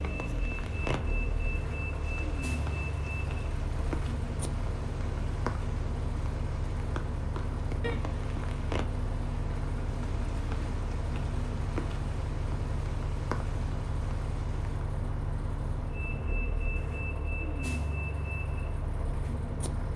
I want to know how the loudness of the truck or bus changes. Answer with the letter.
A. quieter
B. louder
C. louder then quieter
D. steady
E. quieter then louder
D.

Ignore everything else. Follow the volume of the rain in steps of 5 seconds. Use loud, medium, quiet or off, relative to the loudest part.
loud, loud, loud, off.